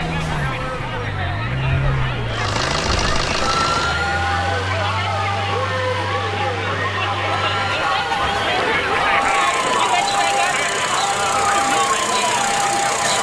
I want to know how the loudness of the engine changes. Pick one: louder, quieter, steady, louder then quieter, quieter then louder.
quieter then louder.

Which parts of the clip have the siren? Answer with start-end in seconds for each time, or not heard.
0.0-13.1.